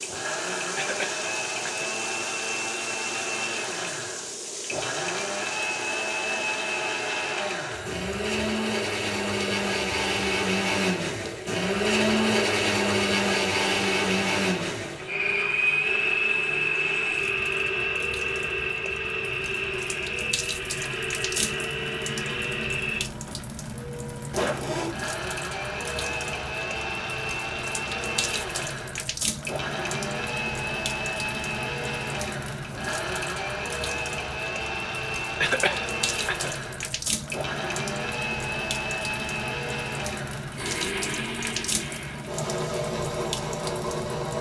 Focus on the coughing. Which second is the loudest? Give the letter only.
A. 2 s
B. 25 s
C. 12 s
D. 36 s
D.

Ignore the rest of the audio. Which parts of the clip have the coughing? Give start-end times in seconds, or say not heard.
0.8-1.9, 35.4-36.5.